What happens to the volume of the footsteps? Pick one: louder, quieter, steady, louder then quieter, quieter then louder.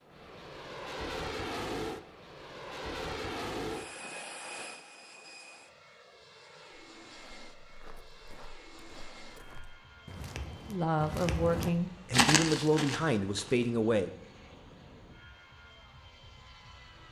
louder.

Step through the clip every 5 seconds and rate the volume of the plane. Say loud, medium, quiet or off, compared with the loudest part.
loud, quiet, quiet, quiet.